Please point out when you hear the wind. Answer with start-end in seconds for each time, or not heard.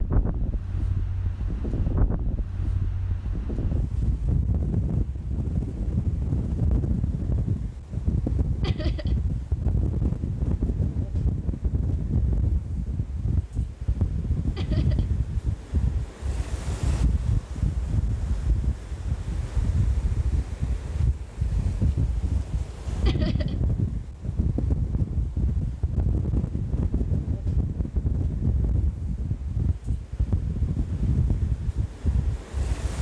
0.0-32.9.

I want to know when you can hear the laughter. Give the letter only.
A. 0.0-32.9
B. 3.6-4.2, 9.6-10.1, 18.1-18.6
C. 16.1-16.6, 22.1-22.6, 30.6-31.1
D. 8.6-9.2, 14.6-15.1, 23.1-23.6
D.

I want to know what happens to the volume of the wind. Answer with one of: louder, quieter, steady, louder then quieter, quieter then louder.
steady.